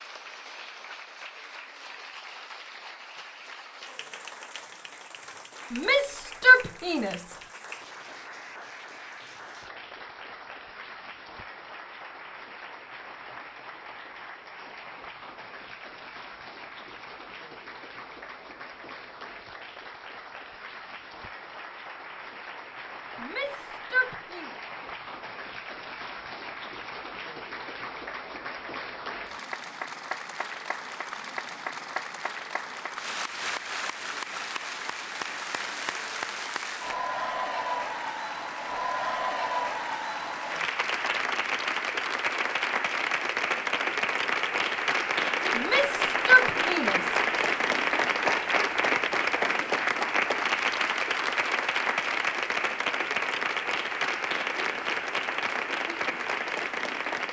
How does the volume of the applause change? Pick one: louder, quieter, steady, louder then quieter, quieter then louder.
louder.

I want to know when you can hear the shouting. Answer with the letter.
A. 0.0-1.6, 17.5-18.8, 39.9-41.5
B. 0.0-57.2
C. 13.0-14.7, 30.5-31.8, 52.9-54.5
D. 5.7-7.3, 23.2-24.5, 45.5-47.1
D.